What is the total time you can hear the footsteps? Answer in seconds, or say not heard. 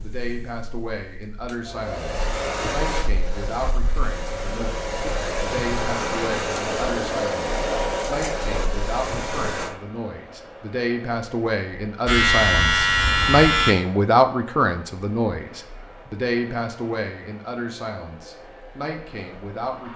not heard.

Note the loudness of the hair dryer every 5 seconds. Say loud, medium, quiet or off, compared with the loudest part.
medium, loud, quiet, quiet.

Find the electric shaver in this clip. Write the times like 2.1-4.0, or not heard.
12.1-13.8.